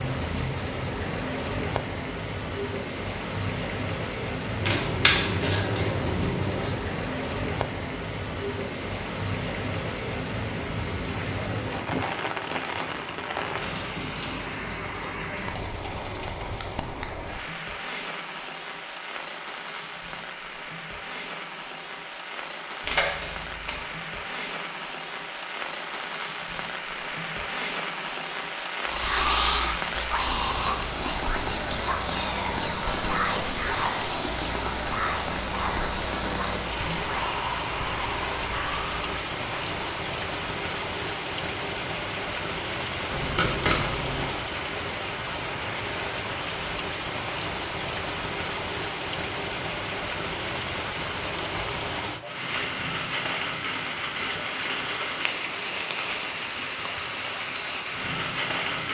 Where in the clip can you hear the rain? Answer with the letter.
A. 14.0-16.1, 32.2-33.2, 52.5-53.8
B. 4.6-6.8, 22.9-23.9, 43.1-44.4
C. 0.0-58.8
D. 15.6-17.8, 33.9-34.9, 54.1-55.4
C.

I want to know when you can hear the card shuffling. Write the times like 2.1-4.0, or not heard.
4.6-6.8, 22.9-23.9, 43.1-44.4.